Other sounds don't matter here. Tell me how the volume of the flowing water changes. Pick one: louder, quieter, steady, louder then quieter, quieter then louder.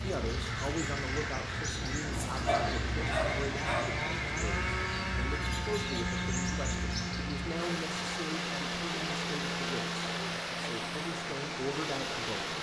louder.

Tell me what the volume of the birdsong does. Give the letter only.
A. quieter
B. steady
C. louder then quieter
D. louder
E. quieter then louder
B.